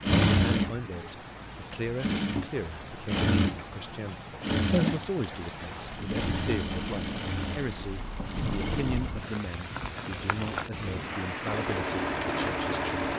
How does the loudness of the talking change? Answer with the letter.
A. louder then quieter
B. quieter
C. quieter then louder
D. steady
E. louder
D.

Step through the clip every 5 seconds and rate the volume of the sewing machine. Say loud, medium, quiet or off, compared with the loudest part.
loud, medium, medium.